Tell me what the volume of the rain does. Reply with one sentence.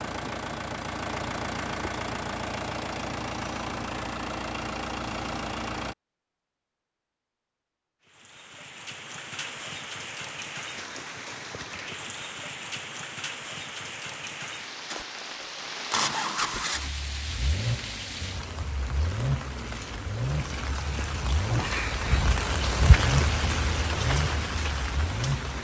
The volume of the rain goes up.